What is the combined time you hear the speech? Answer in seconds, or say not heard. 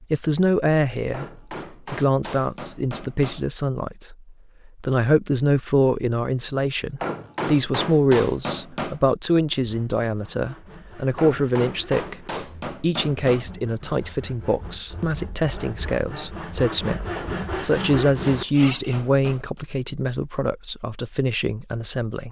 22 s.